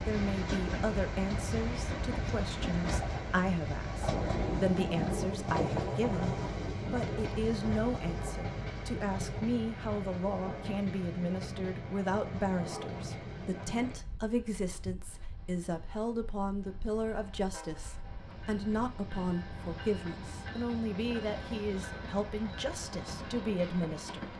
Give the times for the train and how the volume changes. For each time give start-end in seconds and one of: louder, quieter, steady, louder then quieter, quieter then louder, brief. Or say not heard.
0.0-24.3 quieter then louder.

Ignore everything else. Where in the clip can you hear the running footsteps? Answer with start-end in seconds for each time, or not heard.
not heard.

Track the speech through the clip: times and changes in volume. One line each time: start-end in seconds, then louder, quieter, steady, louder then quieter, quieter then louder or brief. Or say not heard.
0.1-24.3 steady.